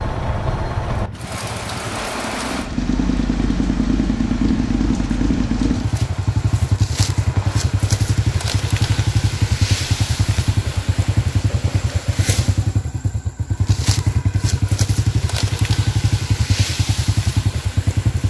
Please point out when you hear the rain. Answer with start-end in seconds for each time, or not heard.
0.0-12.7.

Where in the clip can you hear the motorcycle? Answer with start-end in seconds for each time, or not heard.
0.0-18.2.